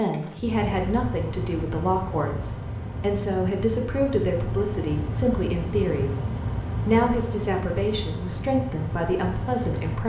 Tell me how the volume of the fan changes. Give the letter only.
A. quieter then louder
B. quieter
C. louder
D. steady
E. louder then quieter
D.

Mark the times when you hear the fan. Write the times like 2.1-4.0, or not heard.
0.0-10.0.